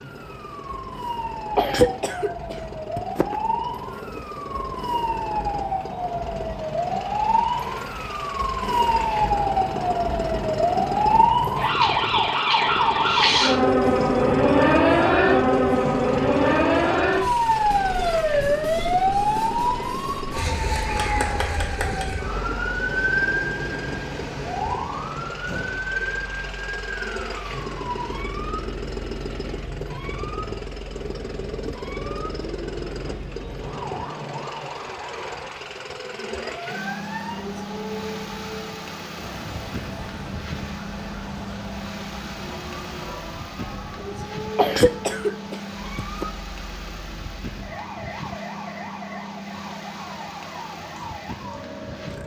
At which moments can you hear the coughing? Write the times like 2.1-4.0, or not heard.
1.6-3.4, 44.5-46.2.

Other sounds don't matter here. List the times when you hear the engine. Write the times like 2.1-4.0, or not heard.
0.0-52.2.